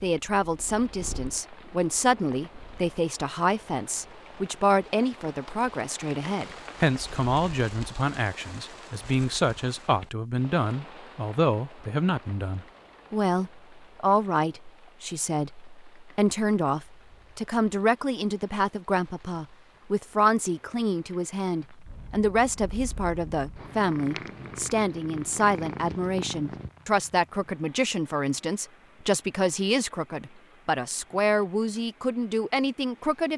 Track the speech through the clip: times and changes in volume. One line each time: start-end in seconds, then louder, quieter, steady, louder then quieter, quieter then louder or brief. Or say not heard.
0.0-33.3 steady.